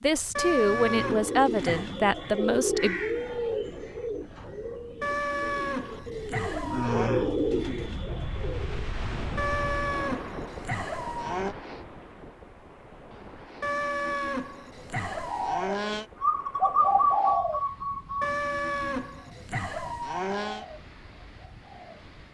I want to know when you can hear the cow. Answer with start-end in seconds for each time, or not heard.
0.3-1.9, 5.0-7.2, 9.3-11.6, 13.6-16.1, 18.2-20.6.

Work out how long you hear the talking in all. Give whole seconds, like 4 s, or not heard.
3 s.